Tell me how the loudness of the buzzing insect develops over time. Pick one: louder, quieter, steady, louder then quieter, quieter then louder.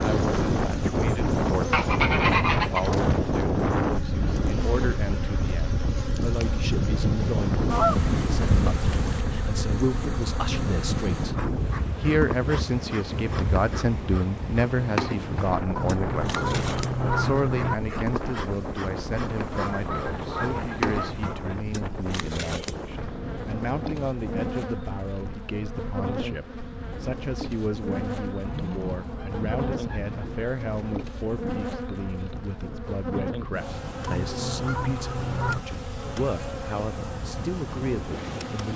steady.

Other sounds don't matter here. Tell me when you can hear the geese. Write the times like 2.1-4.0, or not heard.
1.7-2.9, 7.7-9.2, 15.8-17.8, 19.5-21.4, 28.4-30.2, 34.0-35.6.